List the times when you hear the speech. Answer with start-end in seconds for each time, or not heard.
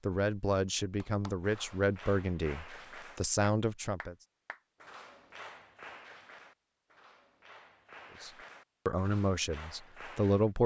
0.1-4.2, 8.2-10.6.